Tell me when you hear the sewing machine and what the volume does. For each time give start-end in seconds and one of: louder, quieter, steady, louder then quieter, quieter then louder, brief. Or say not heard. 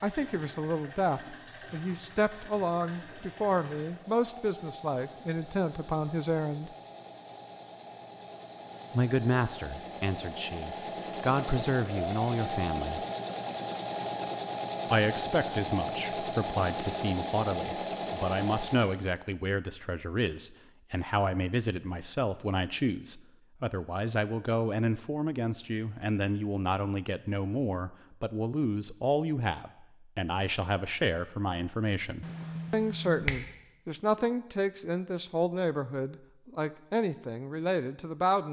0.0-19.1 louder.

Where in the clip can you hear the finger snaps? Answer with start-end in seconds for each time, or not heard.
32.2-33.4.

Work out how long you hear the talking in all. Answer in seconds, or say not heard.
34 s.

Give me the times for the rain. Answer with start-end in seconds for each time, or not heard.
not heard.